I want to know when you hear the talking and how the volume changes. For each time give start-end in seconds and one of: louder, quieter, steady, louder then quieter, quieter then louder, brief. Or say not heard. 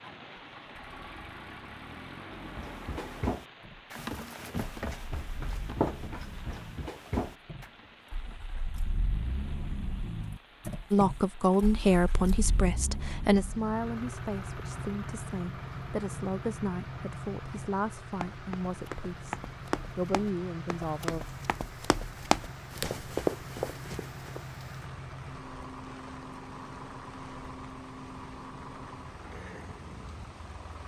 10.9-21.2 quieter.